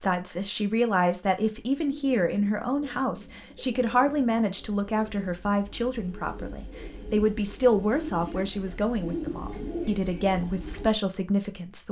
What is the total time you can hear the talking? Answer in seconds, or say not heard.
12 s.